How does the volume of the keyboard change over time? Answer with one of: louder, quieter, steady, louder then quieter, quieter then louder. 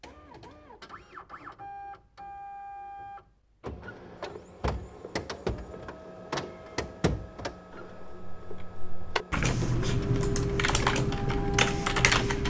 louder.